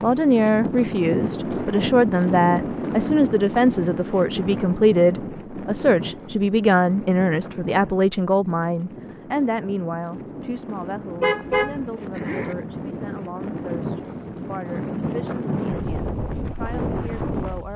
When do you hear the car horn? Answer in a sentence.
The car horn can be heard from 11.2 to 12.6 s.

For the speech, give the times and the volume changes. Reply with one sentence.
You can hear the speech from 0.0 to 17.7 s, getting quieter.